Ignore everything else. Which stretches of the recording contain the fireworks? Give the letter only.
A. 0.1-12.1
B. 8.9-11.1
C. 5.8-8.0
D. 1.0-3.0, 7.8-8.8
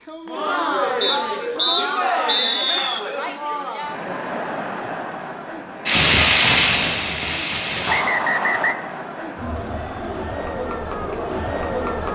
C.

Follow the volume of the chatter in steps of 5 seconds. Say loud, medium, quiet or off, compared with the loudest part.
loud, medium, loud.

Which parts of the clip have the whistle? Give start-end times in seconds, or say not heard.
1.0-3.0, 7.8-8.8.